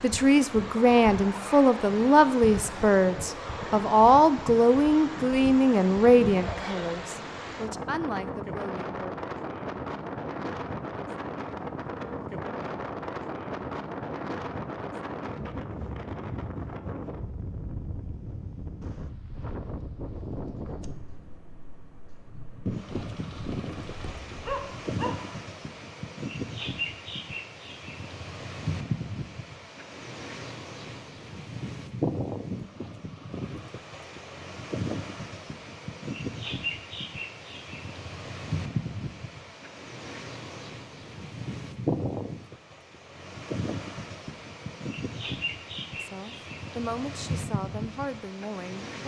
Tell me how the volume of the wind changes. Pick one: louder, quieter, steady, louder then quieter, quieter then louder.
steady.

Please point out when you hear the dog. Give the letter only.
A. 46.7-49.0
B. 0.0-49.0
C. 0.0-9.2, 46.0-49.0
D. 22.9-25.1
D.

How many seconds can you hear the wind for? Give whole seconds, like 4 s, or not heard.
49 s.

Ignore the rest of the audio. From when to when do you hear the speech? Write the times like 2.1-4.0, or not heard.
0.0-9.2, 46.0-49.0.